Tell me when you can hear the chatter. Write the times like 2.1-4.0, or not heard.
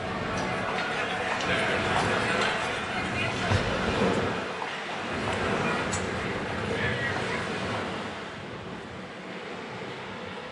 0.0-7.6.